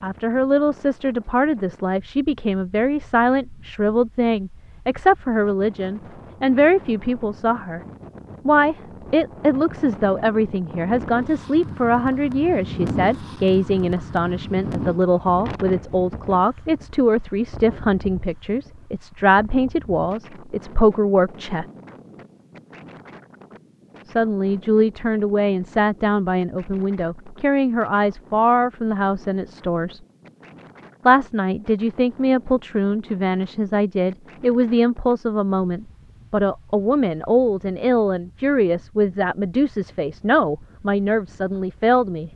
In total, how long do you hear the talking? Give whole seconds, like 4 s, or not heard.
38 s.